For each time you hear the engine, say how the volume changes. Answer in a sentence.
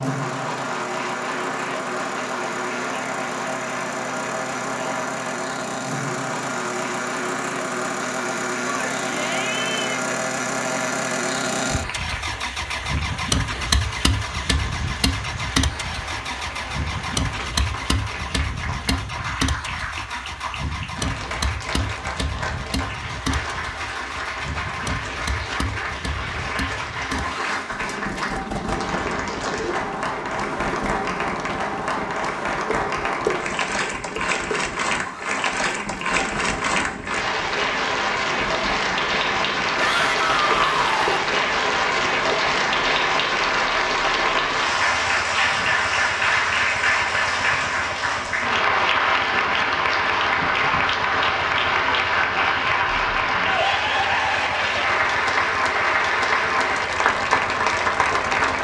The engine can be heard from 0.0 to 58.5 s, getting quieter.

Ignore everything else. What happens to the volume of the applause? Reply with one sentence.
The loudness of the applause goes up.